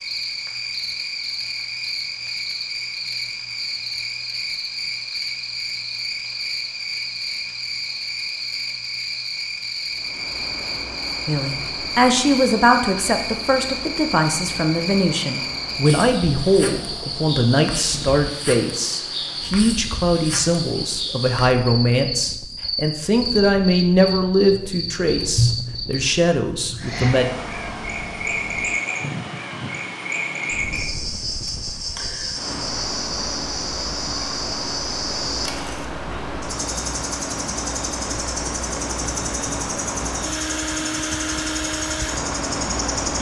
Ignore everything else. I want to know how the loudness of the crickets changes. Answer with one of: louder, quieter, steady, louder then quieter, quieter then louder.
steady.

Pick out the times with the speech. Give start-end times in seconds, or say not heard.
11.2-27.2.